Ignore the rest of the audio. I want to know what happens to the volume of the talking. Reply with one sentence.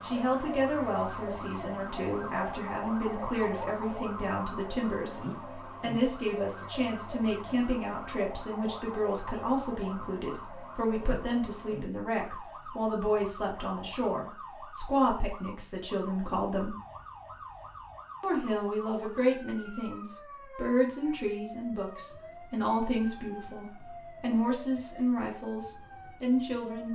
The loudness of the talking stays about the same.